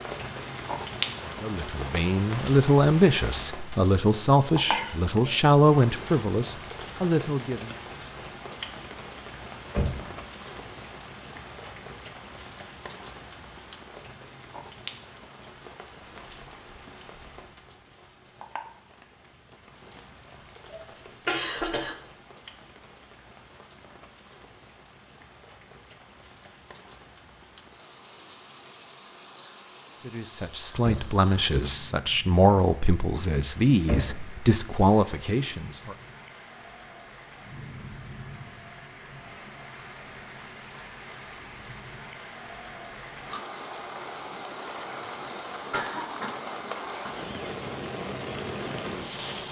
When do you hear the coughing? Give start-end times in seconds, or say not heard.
4.7-5.5, 20.7-21.9, 44.9-46.4.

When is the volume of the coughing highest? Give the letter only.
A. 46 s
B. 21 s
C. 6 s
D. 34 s
B.